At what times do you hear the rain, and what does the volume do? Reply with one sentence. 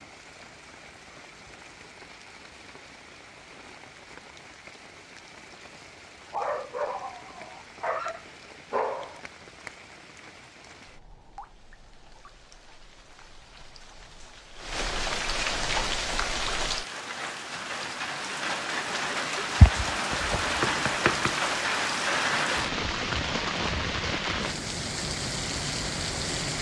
The rain can be heard from 0.0 to 26.5 s, getting louder.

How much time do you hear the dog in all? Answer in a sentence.
You can hear the dog for 3 seconds altogether.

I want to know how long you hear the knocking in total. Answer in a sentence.
You can hear the knocking for 2 seconds altogether.